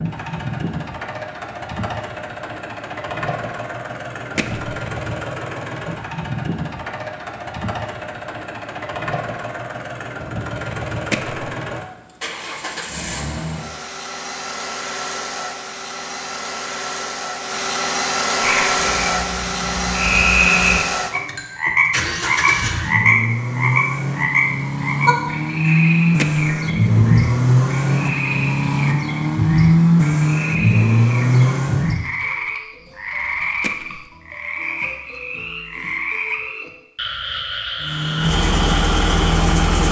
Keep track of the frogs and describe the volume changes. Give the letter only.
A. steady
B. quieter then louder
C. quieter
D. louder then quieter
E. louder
C.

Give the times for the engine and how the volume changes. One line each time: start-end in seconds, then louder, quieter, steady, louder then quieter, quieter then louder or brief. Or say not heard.
0.0-32.1 louder
37.8-39.8 brief.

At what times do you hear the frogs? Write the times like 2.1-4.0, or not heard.
18.4-39.8.